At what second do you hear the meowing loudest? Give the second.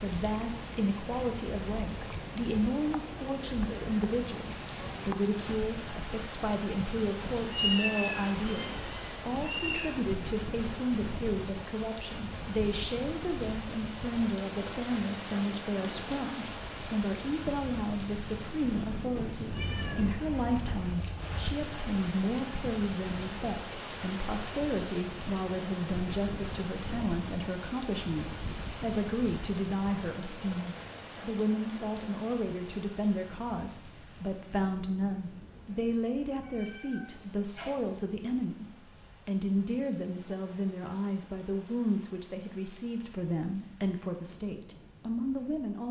8 s.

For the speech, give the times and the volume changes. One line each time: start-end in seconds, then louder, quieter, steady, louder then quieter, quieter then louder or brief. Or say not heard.
0.0-45.8 steady.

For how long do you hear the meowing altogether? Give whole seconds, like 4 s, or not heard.
6 s.